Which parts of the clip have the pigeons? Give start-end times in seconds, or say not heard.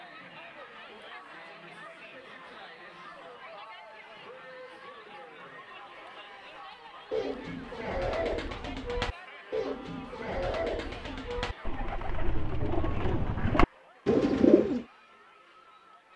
7.1-14.8.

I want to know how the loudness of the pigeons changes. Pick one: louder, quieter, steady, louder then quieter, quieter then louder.
louder.